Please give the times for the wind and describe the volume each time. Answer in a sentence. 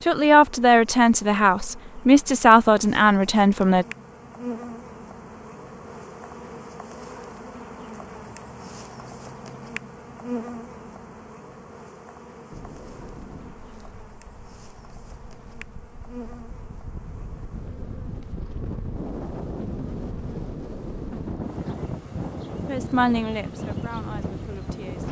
The wind can be heard from 12.5 to 25.0 s, getting louder.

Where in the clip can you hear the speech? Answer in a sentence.
You can hear the speech from 0.0 to 3.9 s and from 22.6 to 25.0 s.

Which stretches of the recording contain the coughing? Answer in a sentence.
You can't hear the coughing here.